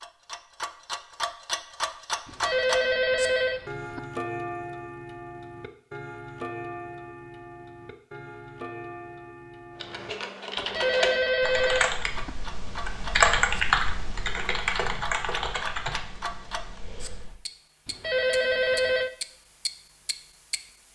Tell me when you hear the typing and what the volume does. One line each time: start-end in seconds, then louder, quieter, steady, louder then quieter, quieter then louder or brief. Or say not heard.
9.8-17.4 louder then quieter.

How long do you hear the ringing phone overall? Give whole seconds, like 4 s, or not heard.
5 s.